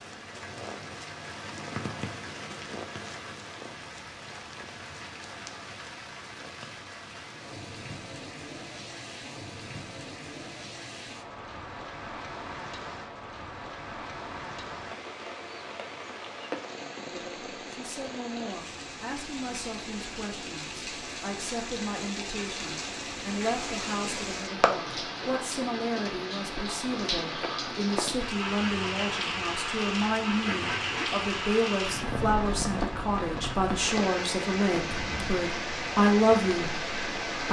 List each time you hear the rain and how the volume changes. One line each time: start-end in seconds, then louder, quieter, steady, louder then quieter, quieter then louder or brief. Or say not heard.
0.0-37.4 louder.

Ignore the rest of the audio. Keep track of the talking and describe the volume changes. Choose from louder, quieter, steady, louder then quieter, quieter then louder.
louder.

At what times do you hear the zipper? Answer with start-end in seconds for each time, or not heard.
30.4-31.1.